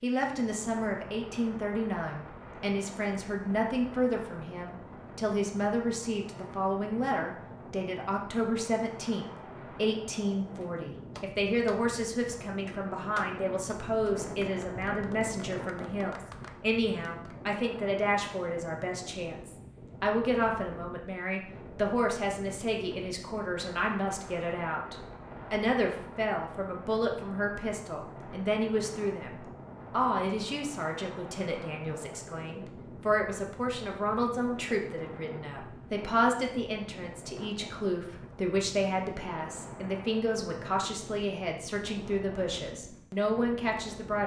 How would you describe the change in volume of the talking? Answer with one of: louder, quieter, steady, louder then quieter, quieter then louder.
steady.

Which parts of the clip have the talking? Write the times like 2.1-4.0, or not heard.
0.0-44.2.